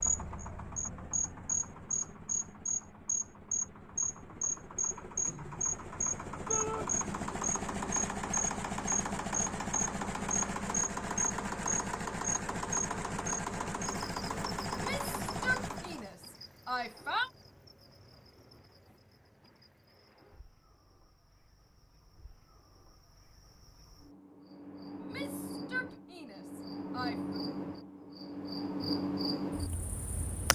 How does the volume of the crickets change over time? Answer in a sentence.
The loudness of the crickets goes down, then up.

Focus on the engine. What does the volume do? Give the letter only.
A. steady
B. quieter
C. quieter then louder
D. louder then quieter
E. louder
E.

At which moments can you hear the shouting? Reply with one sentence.
You can hear the shouting from 6.5 to 6.9 s, from 14.7 to 17.3 s and from 24.9 to 27.4 s.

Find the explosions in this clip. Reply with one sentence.
The explosions can't be heard in this clip.